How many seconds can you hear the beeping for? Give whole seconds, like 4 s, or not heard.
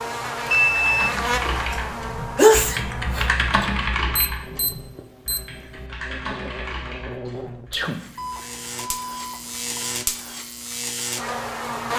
4 s.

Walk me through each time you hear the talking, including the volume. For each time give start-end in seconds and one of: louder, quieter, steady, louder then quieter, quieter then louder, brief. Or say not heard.
not heard.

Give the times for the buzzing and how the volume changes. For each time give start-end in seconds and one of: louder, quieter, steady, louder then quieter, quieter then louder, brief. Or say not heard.
0.0-11.9 quieter then louder.